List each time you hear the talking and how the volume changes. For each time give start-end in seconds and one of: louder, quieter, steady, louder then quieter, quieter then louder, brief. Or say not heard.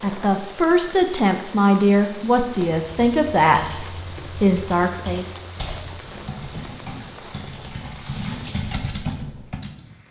0.0-5.3 steady.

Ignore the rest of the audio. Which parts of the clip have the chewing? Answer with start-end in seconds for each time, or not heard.
not heard.